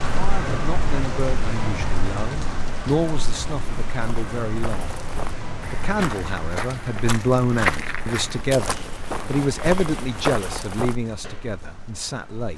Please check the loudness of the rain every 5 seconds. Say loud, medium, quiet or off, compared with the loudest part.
loud, medium, quiet.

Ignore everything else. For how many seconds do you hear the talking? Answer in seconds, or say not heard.
12 s.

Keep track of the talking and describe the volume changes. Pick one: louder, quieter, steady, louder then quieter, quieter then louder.
louder then quieter.